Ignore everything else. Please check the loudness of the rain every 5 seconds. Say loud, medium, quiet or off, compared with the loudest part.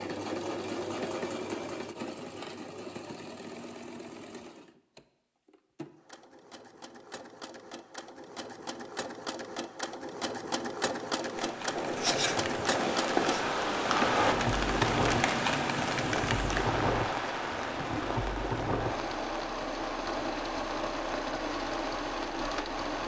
off, off, loud, loud, medium.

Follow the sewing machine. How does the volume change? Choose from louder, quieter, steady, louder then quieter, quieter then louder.
quieter then louder.